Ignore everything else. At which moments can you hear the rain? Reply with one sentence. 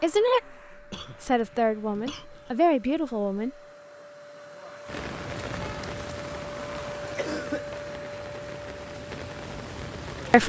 You can hear the rain from 4.8 to 10.4 s.